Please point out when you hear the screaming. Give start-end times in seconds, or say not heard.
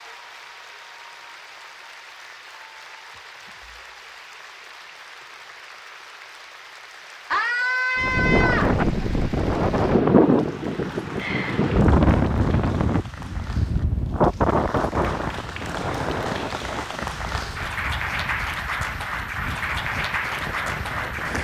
7.3-8.8.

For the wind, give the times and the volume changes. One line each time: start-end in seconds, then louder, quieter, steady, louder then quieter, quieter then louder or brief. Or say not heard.
8.0-21.3 quieter.